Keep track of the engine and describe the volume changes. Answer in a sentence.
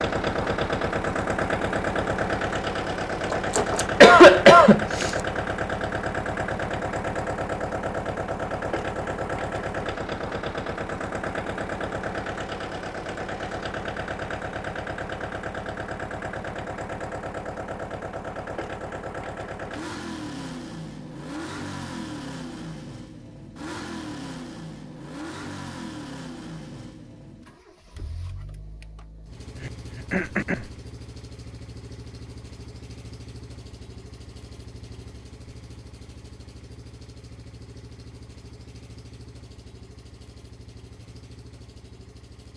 The loudness of the engine goes down.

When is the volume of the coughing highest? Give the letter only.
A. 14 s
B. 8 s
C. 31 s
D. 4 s
D.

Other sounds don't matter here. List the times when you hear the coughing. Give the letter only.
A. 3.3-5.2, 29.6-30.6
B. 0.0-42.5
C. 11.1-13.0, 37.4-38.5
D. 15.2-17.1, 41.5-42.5
A.